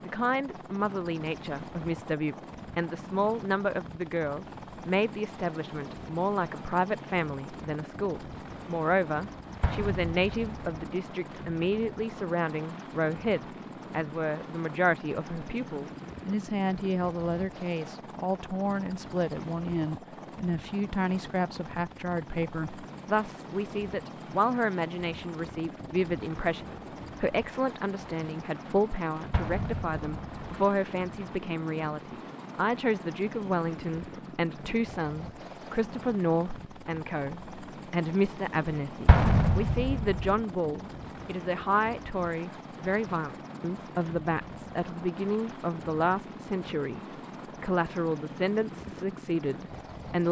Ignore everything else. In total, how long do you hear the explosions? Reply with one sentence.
The explosions can be heard for 4 seconds in total.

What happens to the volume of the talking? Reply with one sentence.
The volume of the talking stays about the same.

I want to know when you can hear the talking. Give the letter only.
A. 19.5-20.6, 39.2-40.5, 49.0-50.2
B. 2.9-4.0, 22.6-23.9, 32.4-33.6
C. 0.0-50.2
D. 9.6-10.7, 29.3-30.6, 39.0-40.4
C.